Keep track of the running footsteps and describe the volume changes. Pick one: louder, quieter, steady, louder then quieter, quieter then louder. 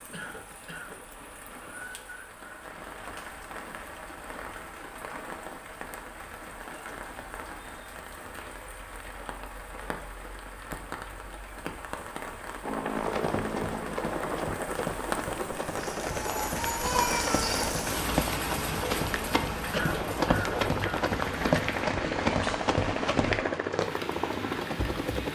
louder.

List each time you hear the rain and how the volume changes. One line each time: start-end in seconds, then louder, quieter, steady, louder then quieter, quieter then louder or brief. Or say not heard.
0.0-25.3 louder then quieter.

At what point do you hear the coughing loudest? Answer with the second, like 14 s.
20 s.